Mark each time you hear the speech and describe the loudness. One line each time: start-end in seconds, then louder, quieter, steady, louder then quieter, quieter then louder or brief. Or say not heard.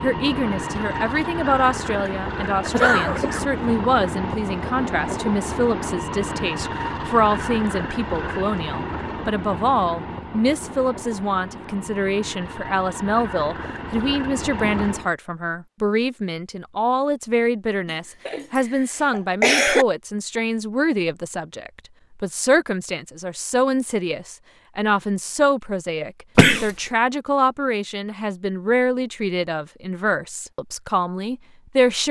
0.0-32.0 steady.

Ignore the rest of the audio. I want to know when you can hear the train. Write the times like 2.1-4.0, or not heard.
0.0-15.2.